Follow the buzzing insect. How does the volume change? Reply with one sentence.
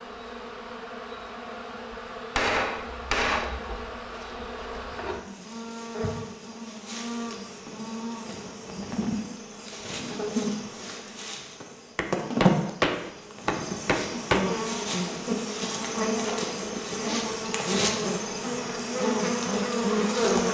The loudness of the buzzing insect goes up.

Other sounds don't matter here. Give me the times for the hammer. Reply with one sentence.
You can hear the hammer from 2.4 to 3.5 s and from 11.9 to 14.4 s.